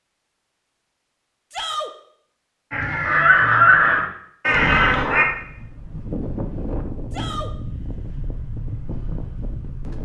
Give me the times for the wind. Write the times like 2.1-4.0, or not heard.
4.5-10.0.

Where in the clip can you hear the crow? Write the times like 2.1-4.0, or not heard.
2.7-5.2.